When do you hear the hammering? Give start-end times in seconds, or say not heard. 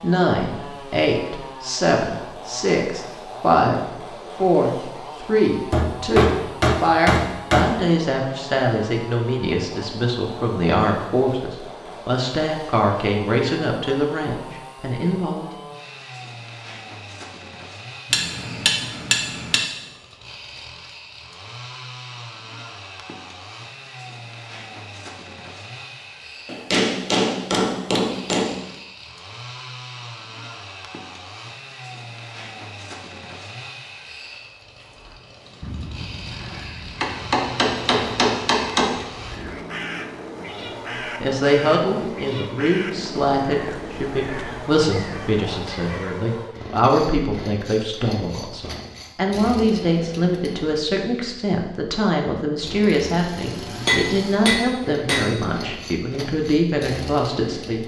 5.7-7.7, 18.1-19.6, 26.4-28.6, 37.0-39.0, 53.9-55.3.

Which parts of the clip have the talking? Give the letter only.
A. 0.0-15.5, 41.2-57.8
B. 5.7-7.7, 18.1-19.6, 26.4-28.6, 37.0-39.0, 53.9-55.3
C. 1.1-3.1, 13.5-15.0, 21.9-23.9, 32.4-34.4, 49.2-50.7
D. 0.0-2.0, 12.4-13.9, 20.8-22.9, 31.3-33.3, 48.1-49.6
A.